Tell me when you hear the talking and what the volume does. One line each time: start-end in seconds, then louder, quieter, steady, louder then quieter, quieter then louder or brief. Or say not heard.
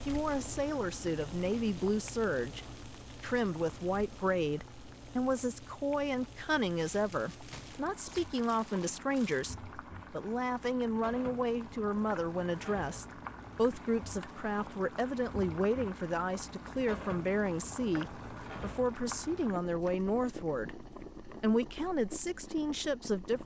0.1-23.4 steady.